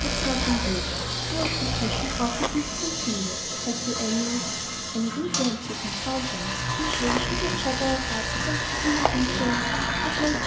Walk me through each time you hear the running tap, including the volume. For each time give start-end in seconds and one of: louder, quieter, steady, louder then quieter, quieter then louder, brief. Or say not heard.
0.0-10.4 steady.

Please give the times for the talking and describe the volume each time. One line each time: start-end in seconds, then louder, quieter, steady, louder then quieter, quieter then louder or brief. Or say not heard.
0.1-10.4 steady.